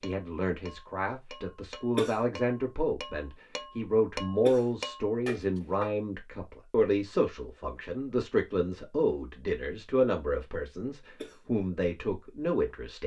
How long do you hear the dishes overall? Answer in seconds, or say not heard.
6 s.